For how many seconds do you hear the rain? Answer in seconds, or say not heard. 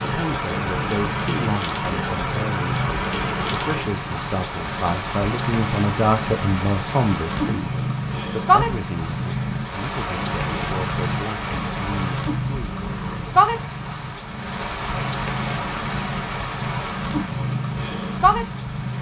19 s.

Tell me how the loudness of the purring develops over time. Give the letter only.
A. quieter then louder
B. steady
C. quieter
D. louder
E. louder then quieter
B.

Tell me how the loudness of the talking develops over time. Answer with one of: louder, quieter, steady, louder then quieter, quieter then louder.
louder then quieter.